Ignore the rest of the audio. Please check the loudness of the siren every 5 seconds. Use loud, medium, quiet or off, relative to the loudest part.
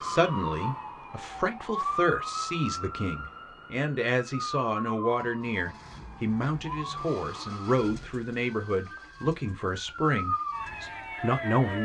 loud, medium, loud.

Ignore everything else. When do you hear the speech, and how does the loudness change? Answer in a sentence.
The speech can be heard from 0.0 to 11.8 s, at a steady volume.